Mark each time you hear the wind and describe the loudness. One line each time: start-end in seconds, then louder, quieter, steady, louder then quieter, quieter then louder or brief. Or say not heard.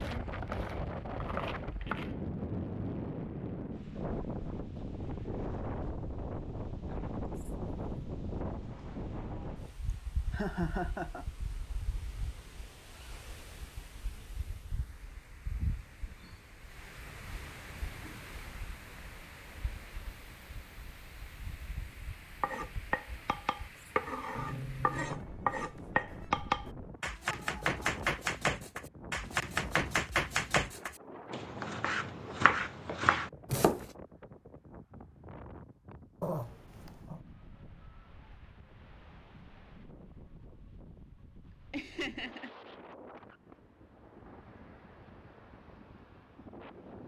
0.0-47.0 quieter.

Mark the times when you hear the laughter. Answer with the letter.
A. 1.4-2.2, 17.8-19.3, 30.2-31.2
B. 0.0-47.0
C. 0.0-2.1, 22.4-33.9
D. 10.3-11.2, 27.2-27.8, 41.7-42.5
D.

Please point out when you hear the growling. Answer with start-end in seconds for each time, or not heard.
7.3-8.2, 23.8-25.2, 36.2-37.2.